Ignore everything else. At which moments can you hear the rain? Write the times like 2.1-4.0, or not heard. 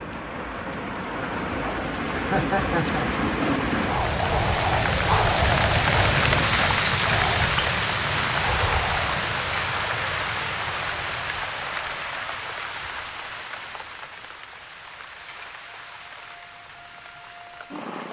0.0-18.0.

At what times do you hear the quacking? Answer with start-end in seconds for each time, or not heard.
not heard.